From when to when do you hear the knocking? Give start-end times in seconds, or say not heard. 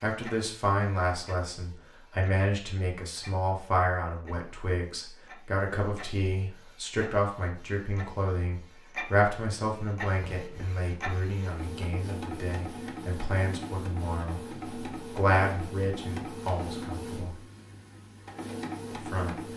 10.2-10.8.